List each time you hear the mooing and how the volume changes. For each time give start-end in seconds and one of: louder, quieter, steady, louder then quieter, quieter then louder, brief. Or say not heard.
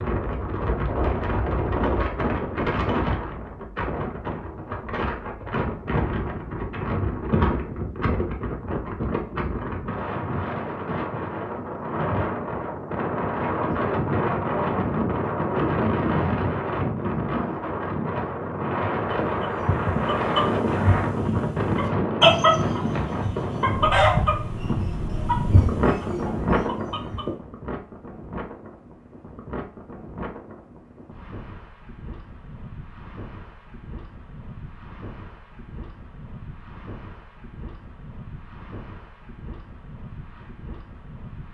not heard.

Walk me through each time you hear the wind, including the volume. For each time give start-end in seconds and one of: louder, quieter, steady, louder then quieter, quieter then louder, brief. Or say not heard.
0.0-41.4 quieter.